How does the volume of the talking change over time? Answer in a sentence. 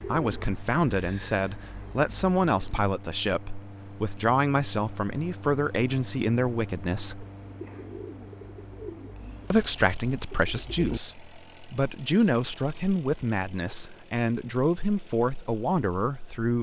The loudness of the talking stays about the same.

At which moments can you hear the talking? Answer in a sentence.
You can hear the talking from 0.1 to 7.2 s and from 9.5 to 16.5 s.